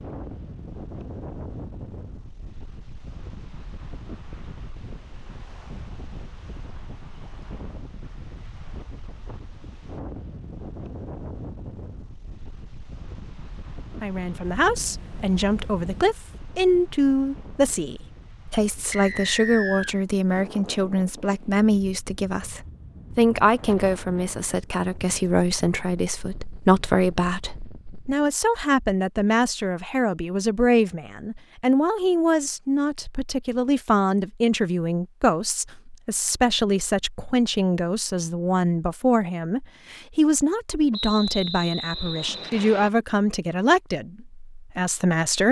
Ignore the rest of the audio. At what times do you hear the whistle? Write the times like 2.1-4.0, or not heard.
18.9-19.9, 40.9-42.9.